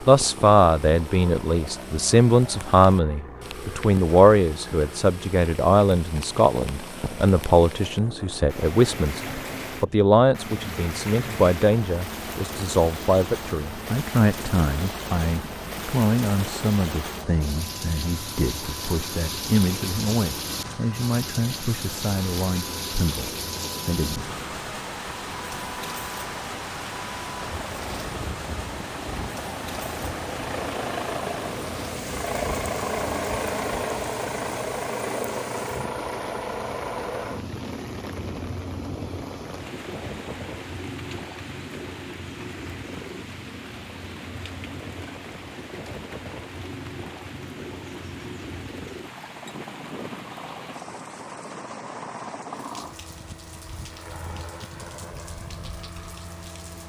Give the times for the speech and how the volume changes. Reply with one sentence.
The speech can be heard from 0.1 to 24.4 s, getting quieter.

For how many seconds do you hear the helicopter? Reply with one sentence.
You can hear the helicopter for 57 seconds altogether.